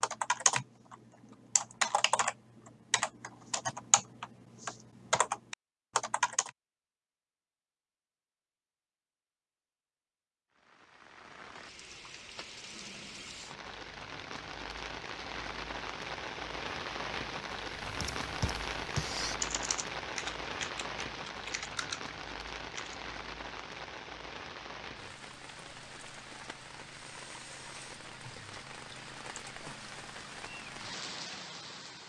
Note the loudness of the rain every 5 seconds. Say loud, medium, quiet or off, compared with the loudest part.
off, off, medium, loud, loud, medium, medium.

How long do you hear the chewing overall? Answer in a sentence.
The chewing can't be heard in this clip.